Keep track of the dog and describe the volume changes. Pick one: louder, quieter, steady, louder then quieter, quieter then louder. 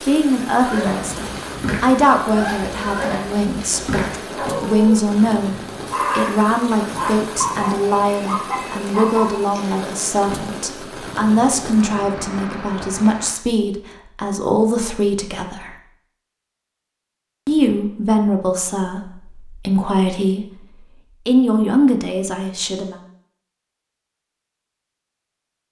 steady.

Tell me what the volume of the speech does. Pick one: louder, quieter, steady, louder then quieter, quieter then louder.
steady.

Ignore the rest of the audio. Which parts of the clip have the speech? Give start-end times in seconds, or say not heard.
0.0-15.8, 17.4-22.9.